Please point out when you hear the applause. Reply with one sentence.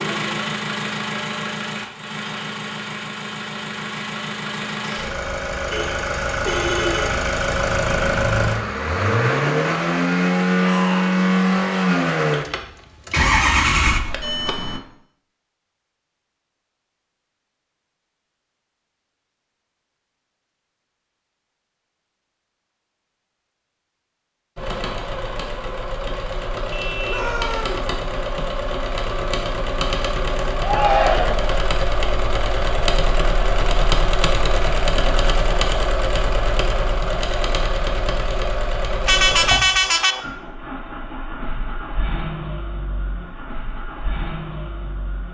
The applause can't be heard in this clip.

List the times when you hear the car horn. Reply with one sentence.
You can hear the car horn from 5.7 to 7.2 s, from 26.7 to 27.3 s and from 39.0 to 40.2 s.